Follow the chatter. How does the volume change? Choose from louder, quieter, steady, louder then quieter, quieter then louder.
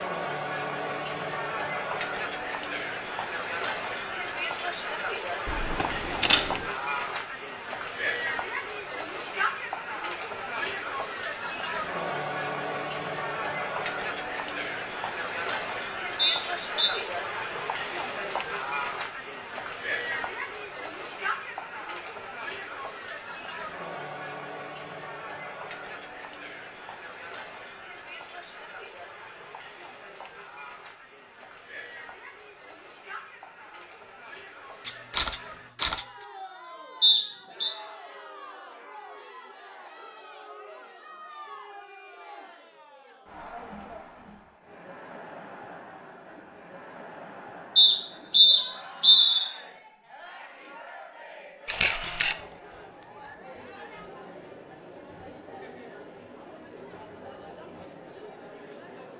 quieter.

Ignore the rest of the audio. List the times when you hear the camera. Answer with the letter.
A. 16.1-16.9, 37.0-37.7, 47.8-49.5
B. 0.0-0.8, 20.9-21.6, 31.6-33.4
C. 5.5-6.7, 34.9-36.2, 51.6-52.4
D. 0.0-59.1
C.